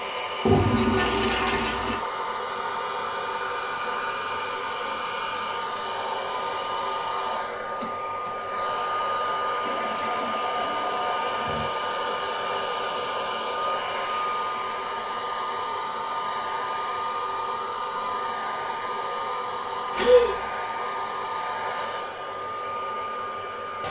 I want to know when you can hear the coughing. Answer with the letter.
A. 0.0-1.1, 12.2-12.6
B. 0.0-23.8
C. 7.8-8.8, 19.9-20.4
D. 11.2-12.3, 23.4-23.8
C.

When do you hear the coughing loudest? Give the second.
20 s.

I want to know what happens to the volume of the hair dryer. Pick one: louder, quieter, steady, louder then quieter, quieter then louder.
steady.